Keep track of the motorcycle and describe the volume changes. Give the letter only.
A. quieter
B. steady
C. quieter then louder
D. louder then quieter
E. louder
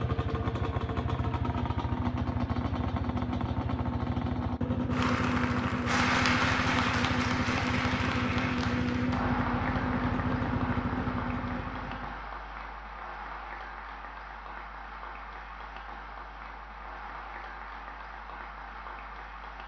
B.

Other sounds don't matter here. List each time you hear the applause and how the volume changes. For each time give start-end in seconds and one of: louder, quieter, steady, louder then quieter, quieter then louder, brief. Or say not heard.
4.9-19.6 quieter.